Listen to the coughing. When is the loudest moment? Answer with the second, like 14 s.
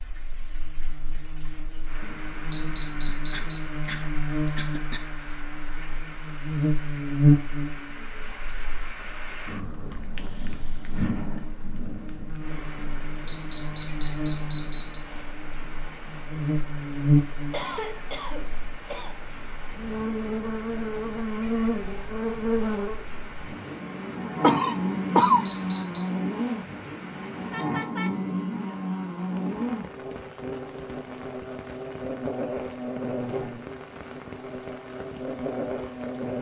25 s.